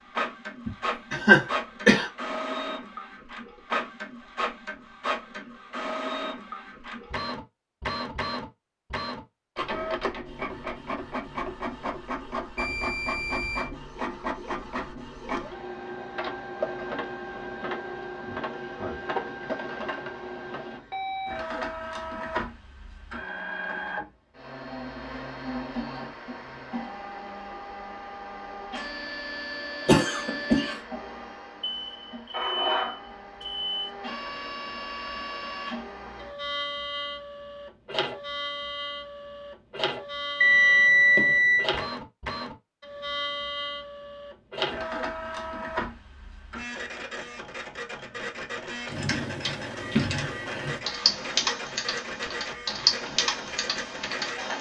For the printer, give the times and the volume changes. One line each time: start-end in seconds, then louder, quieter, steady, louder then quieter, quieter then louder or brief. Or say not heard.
0.0-54.5 steady.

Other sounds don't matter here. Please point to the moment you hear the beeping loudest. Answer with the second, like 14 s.
41 s.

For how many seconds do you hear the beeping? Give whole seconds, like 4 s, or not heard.
5 s.